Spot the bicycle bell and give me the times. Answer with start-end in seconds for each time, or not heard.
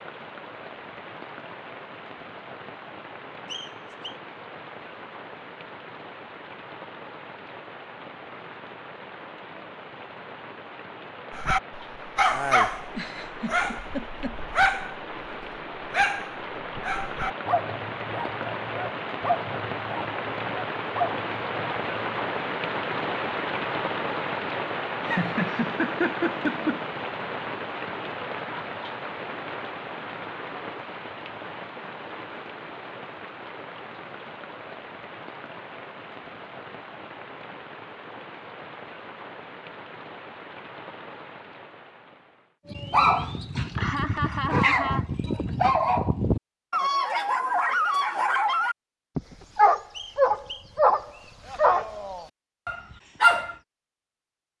not heard.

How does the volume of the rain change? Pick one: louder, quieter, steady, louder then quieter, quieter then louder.
louder then quieter.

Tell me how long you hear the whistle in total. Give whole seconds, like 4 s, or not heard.
2 s.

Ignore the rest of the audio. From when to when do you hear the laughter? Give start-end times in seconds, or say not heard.
12.9-14.3, 25.1-26.9, 43.6-45.1.